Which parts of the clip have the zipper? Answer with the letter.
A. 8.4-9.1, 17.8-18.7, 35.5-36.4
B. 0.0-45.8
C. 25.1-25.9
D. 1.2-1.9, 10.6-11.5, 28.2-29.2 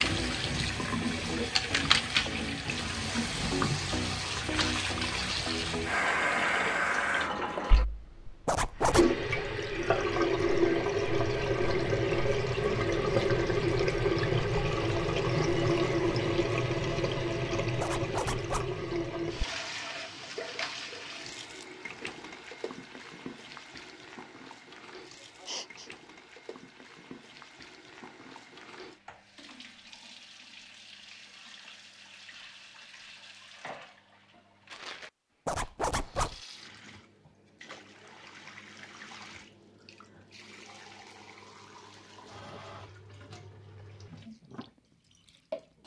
A.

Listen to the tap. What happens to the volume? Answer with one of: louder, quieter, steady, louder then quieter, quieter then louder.
quieter.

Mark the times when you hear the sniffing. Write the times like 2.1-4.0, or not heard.
25.1-25.9.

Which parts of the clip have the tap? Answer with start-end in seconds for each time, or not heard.
0.0-45.8.